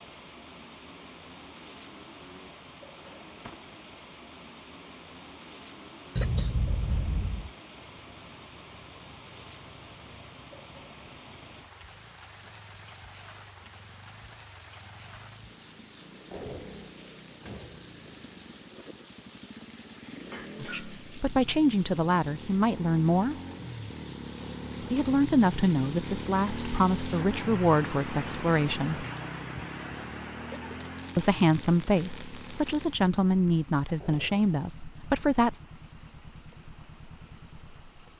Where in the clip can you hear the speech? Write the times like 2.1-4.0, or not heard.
20.6-23.4, 24.9-29.1, 31.1-35.6.